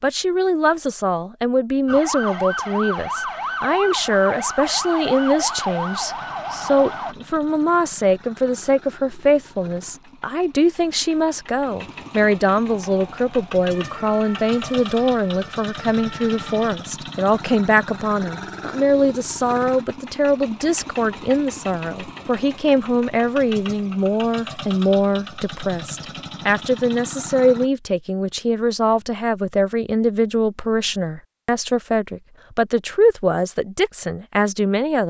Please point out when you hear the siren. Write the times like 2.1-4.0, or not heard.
1.9-7.2, 12.7-16.8.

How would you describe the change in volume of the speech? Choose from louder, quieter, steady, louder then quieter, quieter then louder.
steady.